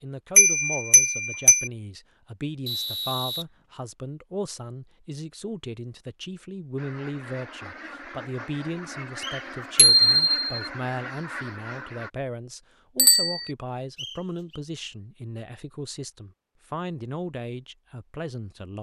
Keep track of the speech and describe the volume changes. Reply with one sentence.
The loudness of the speech stays about the same.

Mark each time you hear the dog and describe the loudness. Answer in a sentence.
You can't hear the dog here.